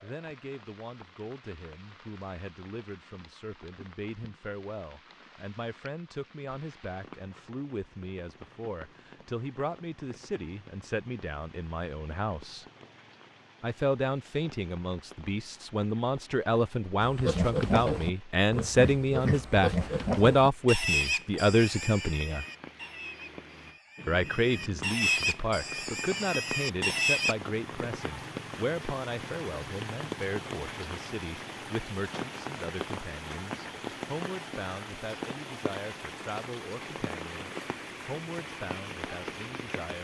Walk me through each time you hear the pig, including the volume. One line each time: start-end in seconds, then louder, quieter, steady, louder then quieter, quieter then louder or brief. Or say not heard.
17.0-27.4 quieter then louder.